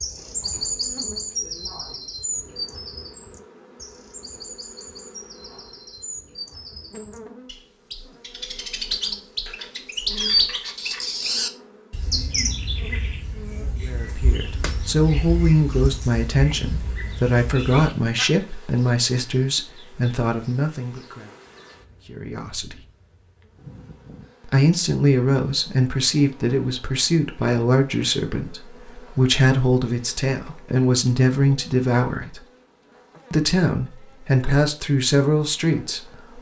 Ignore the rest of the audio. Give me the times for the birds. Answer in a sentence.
The birds can be heard from 0.0 to 18.2 s.